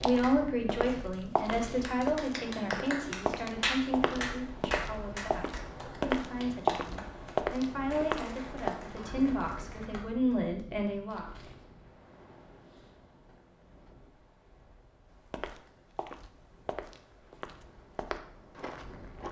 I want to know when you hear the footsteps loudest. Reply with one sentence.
The loudest moment of the footsteps is at 7 seconds.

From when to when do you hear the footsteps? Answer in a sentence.
The footsteps can be heard from 0.0 to 8.7 s and from 15.1 to 19.2 s.